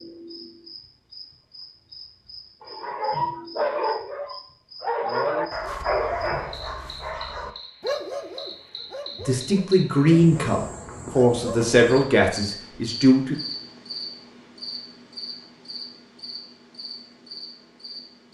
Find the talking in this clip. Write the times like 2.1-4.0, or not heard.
9.2-13.3.